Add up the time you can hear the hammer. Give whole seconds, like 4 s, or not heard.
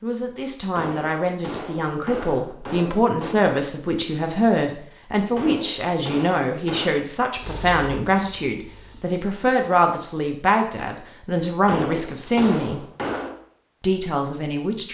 6 s.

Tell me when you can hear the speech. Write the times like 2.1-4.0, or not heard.
0.0-12.8, 13.8-14.9.